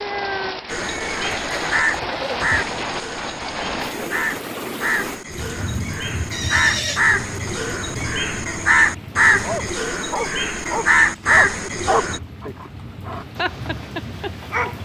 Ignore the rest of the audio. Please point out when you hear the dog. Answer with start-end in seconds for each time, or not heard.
9.4-14.8.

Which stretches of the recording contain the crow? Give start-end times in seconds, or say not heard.
0.7-12.2.